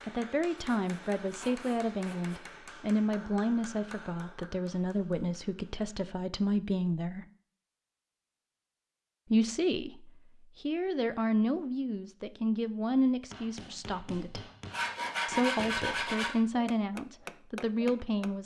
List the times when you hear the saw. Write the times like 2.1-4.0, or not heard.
0.6-2.4, 14.7-16.4.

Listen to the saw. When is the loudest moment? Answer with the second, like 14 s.
15 s.